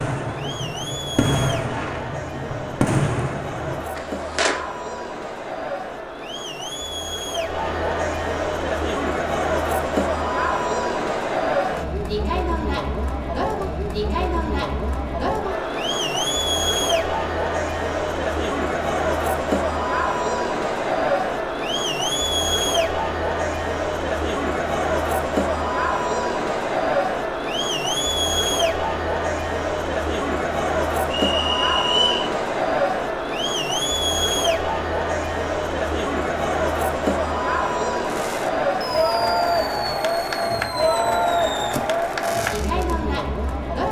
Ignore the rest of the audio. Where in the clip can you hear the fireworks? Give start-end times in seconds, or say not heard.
0.0-4.5, 38.0-43.0.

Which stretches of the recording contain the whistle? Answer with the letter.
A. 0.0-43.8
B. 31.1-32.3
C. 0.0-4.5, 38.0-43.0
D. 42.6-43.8
B.